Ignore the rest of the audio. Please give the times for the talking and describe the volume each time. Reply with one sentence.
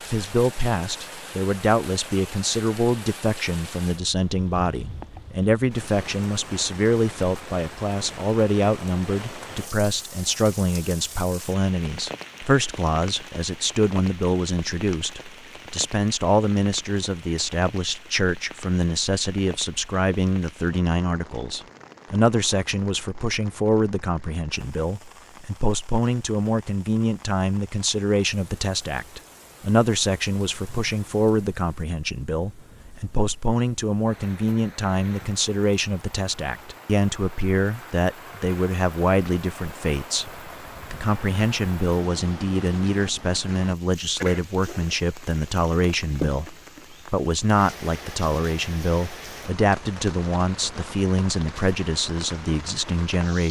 You can hear the talking from 0.1 to 53.4 s, at a steady volume.